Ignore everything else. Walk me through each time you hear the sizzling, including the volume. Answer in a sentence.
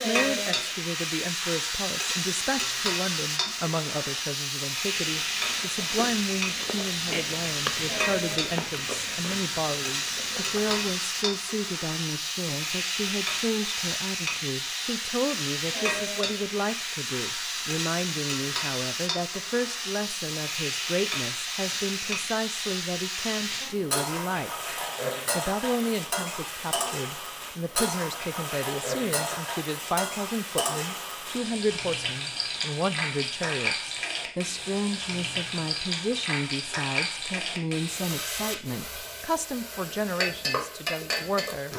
The sizzling can be heard from 0.0 to 41.7 s, at a steady volume.